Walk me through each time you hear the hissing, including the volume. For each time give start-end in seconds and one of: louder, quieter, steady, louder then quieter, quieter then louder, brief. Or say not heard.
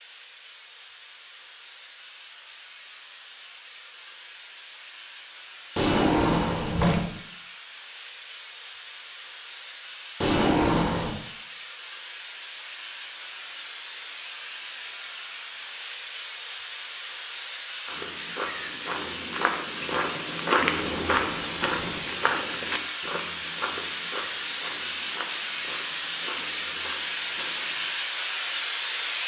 0.0-29.2 louder.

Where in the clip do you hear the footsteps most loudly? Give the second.
21 s.